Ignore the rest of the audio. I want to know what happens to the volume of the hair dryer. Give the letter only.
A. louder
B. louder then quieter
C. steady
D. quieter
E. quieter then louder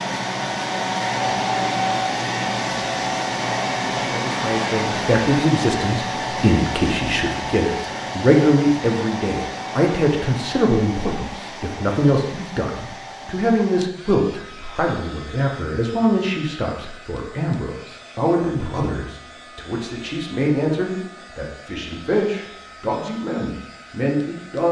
D.